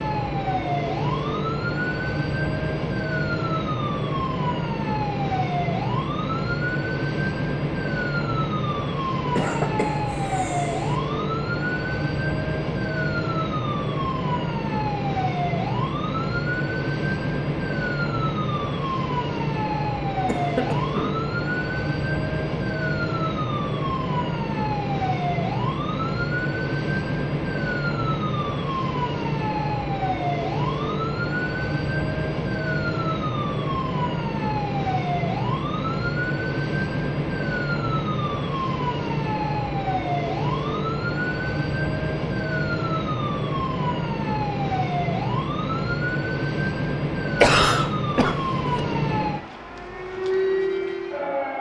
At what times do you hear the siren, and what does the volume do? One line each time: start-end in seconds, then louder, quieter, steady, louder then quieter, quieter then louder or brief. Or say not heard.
0.0-51.5 steady.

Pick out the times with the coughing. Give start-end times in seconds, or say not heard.
9.2-11.0, 20.2-21.1, 47.4-48.8.